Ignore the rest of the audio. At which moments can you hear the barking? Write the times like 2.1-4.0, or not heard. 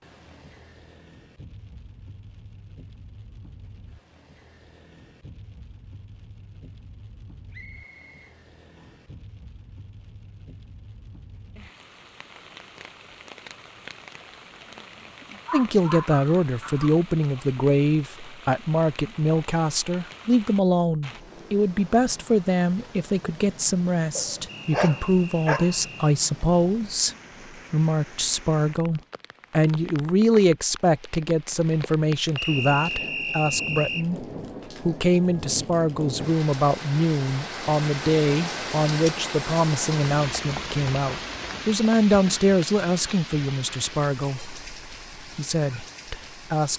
15.4-17.4, 24.1-25.8.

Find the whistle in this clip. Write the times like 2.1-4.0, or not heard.
7.5-9.1, 24.4-26.1, 32.4-34.0.